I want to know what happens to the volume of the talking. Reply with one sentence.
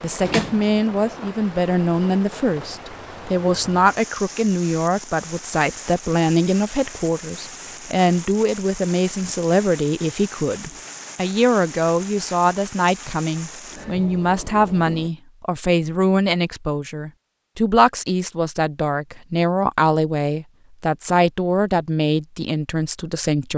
The loudness of the talking stays about the same.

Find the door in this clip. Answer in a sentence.
You can hear the door from 0.2 to 0.8 s.